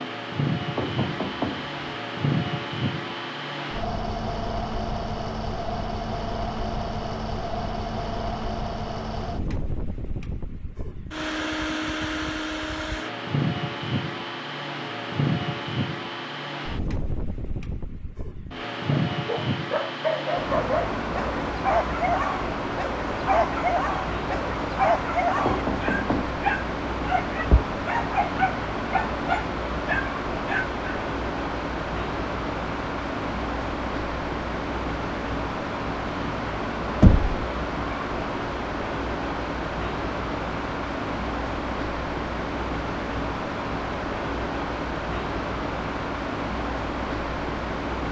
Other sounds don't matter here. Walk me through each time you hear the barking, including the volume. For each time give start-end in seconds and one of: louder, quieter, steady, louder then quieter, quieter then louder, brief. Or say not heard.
19.1-31.0 steady.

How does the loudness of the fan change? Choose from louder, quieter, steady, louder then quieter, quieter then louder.
steady.